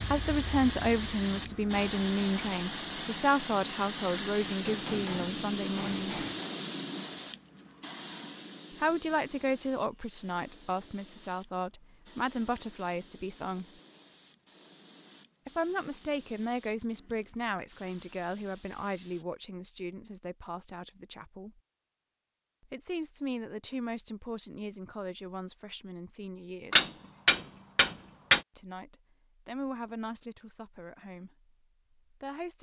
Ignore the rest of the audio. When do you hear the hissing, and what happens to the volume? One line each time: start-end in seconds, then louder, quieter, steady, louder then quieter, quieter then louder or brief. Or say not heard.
0.0-19.2 quieter.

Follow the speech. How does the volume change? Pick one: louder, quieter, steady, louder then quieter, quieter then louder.
quieter.